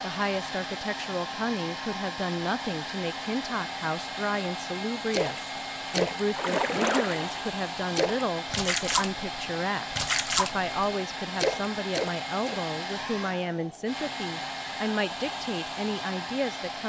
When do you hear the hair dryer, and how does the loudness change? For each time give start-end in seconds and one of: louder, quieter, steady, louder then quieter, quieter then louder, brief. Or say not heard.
0.0-16.8 steady.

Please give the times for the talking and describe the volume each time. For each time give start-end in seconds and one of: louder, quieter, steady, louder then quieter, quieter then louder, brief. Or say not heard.
0.0-16.8 steady.